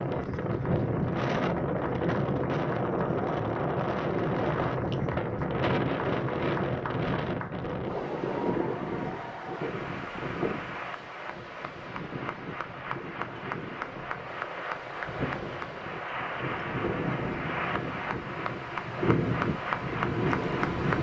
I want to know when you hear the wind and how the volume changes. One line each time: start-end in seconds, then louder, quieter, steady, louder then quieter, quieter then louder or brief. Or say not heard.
0.0-20.9 quieter then louder.